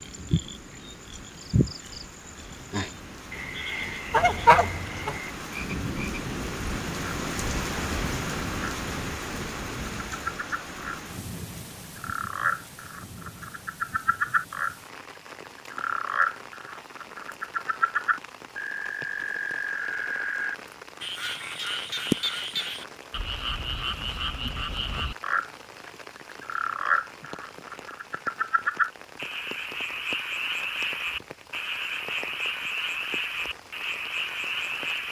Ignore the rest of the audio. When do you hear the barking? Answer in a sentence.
The barking can't be heard in this clip.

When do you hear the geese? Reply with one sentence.
You can hear the geese from 4.1 to 5.2 s.